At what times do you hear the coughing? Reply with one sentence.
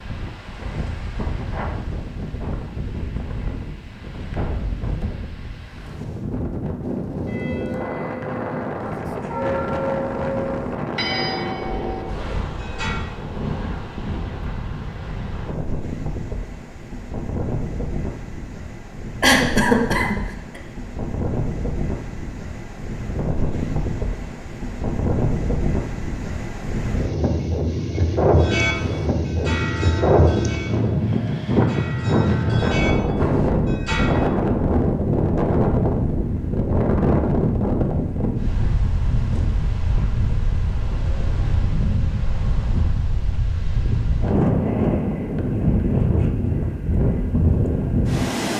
The coughing can be heard from 19.2 to 20.6 s.